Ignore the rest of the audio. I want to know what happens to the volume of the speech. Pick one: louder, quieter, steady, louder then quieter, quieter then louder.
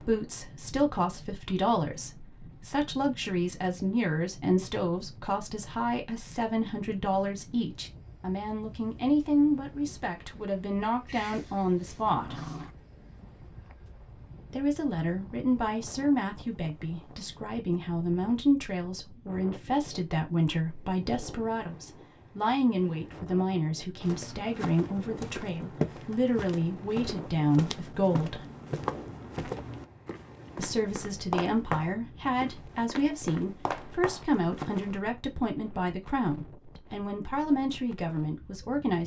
steady.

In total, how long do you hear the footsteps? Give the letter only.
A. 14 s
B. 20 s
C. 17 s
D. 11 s
D.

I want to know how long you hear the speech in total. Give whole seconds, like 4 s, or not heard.
35 s.